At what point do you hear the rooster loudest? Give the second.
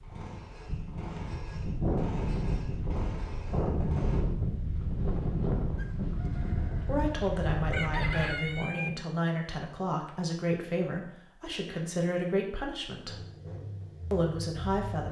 8 s.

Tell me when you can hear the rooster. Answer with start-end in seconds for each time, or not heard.
5.8-8.9.